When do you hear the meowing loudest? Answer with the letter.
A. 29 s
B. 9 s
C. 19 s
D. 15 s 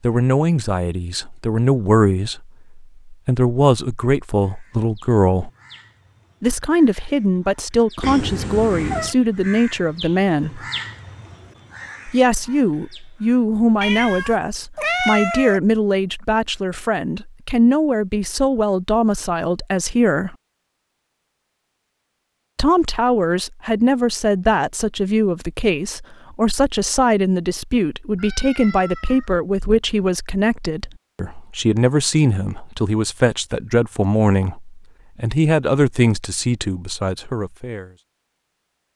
D.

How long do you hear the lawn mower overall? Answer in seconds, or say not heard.
not heard.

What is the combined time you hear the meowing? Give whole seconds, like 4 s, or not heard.
4 s.